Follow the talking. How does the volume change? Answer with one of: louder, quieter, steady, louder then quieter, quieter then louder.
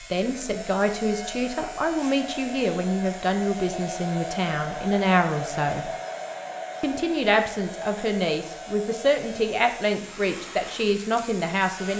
steady.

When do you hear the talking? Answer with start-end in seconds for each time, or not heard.
0.0-5.9, 6.8-11.9.